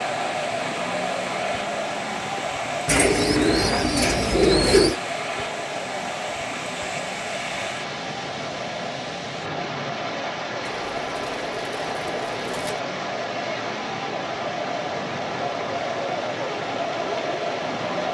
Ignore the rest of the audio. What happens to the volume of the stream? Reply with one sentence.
The volume of the stream stays about the same.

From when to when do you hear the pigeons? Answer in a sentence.
The pigeons can be heard from 2.9 to 5.0 s and from 10.7 to 12.8 s.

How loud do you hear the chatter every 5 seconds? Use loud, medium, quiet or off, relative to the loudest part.
loud, medium, loud, loud.